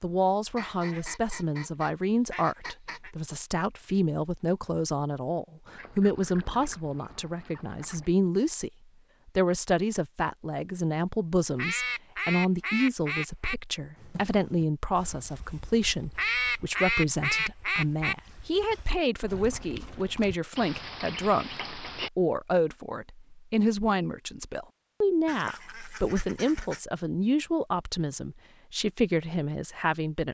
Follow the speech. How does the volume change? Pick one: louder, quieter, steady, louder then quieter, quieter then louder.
steady.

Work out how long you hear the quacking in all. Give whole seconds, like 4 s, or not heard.
12 s.